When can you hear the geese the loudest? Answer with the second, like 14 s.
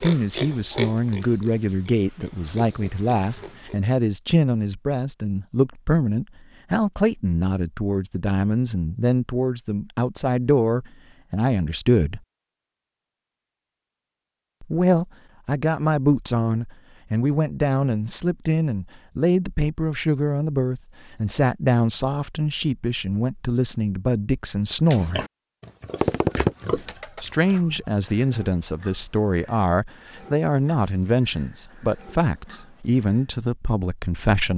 26 s.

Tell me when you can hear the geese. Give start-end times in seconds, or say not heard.
26.0-27.9.